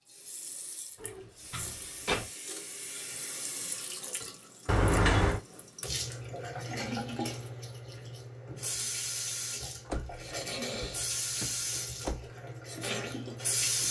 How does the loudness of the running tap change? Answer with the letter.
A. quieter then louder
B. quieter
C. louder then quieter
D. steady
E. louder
E.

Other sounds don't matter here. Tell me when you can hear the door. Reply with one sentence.
You can hear the door from 1.0 to 2.3 s, from 4.7 to 5.4 s and from 9.8 to 12.3 s.